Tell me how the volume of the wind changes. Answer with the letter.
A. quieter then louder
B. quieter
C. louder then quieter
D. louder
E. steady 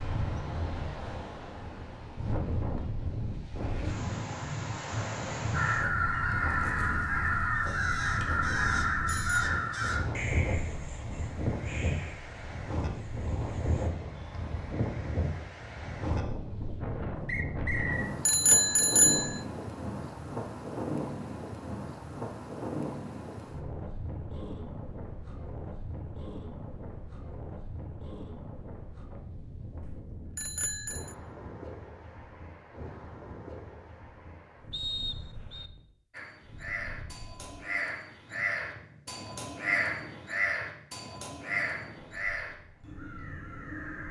B.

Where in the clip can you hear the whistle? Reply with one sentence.
You can hear the whistle from 17.2 to 18.1 s and from 34.7 to 35.7 s.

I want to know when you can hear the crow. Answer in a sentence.
You can hear the crow from 5.5 to 14.7 s and from 36.1 to 44.0 s.